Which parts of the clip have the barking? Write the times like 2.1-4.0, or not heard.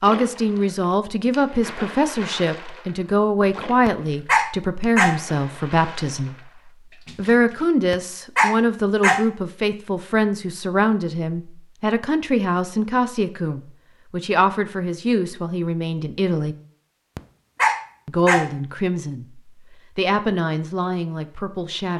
3.9-5.2, 7.9-9.3, 17.1-18.6.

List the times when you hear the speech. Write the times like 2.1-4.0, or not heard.
0.0-16.6, 18.1-21.9.